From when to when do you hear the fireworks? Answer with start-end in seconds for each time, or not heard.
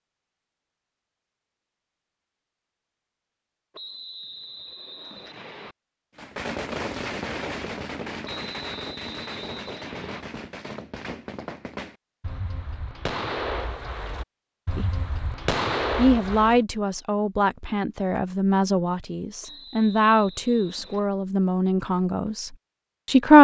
6.2-16.6.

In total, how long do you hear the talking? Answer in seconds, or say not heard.
7 s.